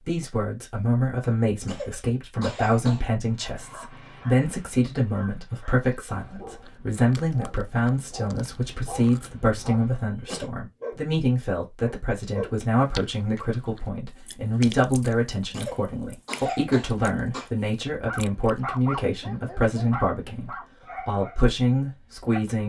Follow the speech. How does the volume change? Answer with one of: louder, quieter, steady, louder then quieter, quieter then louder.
steady.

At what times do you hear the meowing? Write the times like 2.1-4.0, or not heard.
not heard.